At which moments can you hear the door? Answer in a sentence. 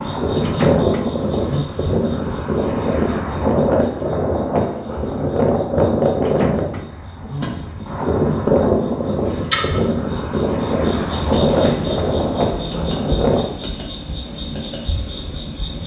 The door can be heard from 0.3 to 1.6 s, from 6.2 to 7.5 s and from 11.4 to 11.9 s.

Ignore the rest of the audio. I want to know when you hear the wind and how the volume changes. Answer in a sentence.
You can hear the wind from 0.0 to 13.4 s, at a steady volume.